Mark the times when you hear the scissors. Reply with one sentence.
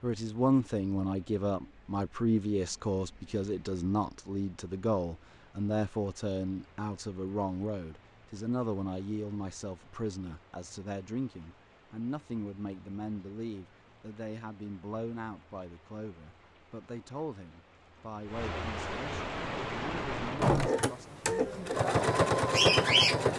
You can't hear the scissors here.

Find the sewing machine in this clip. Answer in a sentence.
You can hear the sewing machine from 19.3 to 23.3 s.